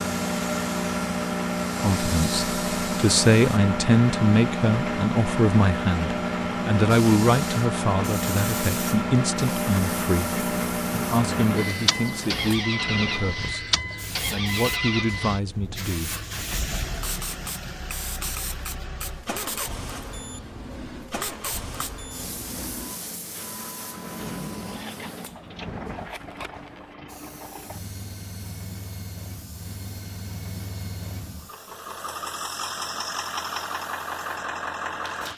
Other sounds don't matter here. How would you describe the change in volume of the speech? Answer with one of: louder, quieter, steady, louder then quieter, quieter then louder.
quieter.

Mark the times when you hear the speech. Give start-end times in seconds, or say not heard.
1.8-16.1.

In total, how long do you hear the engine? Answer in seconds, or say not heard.
35 s.